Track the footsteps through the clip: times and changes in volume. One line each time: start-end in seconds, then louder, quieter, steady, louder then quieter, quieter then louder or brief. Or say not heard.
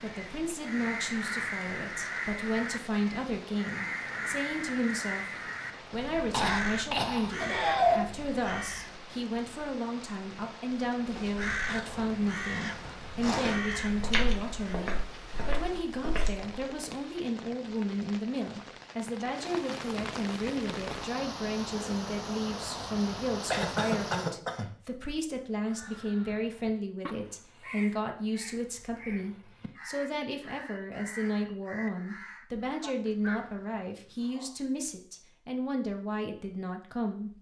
11.1-16.5 louder then quieter.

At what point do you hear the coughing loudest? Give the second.
8 s.